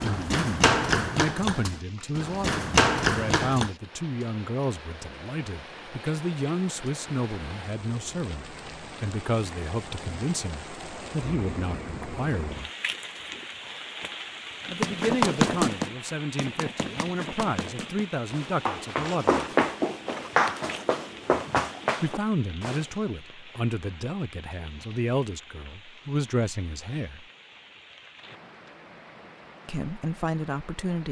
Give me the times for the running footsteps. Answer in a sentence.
The running footsteps can be heard from 0.0 to 3.7 s and from 14.7 to 22.9 s.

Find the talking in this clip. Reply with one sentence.
The talking can be heard from 0.0 to 12.7 s, from 14.7 to 19.4 s, from 22.0 to 27.2 s and from 29.6 to 31.0 s.